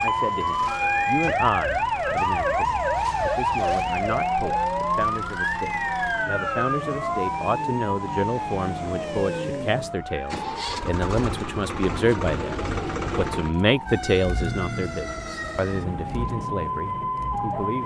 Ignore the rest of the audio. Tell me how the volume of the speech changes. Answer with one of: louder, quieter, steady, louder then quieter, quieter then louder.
louder then quieter.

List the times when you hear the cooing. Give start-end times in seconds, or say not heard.
not heard.